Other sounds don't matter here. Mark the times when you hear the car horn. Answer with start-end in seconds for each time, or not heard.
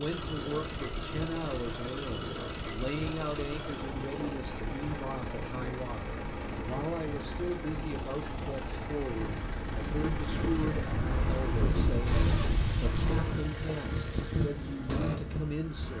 not heard.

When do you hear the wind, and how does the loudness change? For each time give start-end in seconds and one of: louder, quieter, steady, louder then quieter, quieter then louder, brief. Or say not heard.
0.0-15.7 louder.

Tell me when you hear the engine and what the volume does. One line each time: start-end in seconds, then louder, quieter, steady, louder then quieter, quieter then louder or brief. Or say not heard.
0.0-15.9 steady.